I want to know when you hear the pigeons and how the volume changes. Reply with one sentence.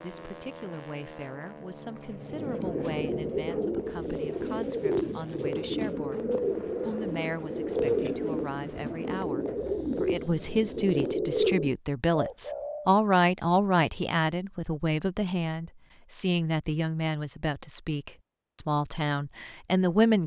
The pigeons can be heard from 2.2 to 12.9 s, at a steady volume.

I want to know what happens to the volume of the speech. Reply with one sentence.
The loudness of the speech goes up.